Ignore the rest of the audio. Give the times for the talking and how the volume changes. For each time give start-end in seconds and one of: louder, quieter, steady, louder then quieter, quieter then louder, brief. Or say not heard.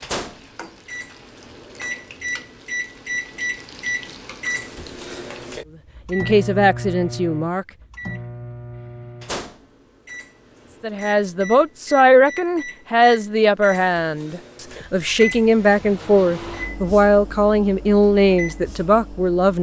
6.0-7.7 brief
10.8-19.5 steady.